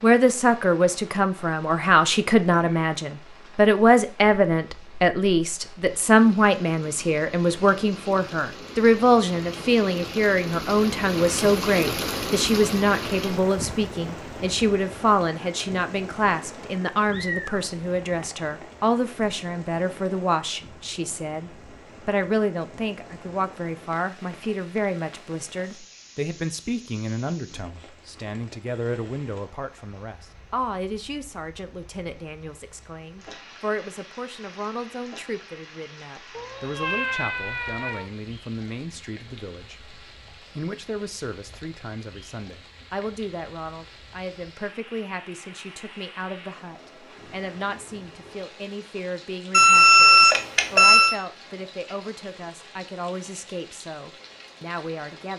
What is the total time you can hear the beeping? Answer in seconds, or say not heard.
2 s.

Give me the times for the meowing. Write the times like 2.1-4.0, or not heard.
17.1-18.7, 36.4-38.0.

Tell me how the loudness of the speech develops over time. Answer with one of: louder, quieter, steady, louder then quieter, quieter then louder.
quieter.